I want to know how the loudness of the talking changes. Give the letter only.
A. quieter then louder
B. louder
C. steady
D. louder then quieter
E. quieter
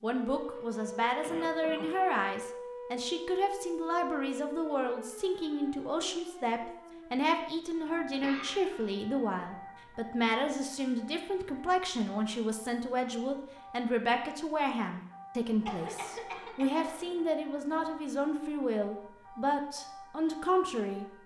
C.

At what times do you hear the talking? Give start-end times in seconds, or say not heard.
0.0-21.1.